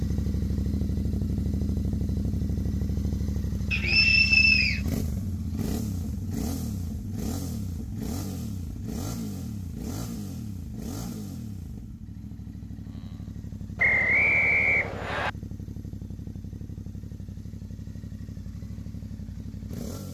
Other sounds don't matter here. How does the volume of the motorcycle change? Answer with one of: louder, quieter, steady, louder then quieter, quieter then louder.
quieter.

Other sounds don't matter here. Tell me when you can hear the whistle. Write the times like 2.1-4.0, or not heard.
3.7-4.8, 13.8-15.3.